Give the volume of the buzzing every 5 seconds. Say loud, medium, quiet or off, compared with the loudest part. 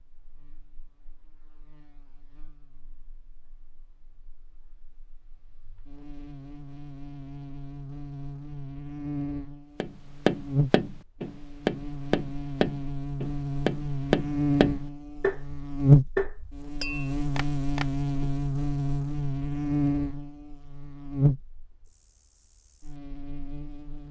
quiet, quiet, medium, loud, medium.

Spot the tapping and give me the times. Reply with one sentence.
The tapping can be heard from 9.8 to 18.3 s.